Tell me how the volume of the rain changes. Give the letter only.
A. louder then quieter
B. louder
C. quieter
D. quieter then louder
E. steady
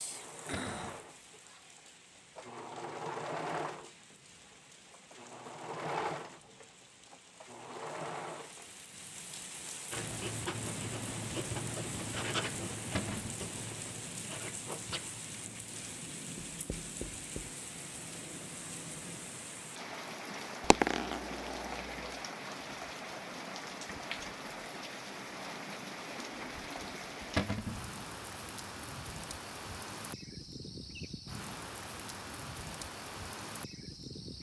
B.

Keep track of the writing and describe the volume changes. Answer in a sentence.
The volume of the writing goes down.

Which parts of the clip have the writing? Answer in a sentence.
You can hear the writing from 9.9 to 17.6 s.